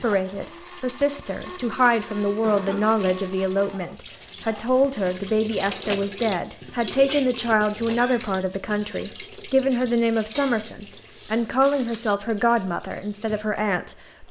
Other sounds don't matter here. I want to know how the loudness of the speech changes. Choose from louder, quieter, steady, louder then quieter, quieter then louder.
steady.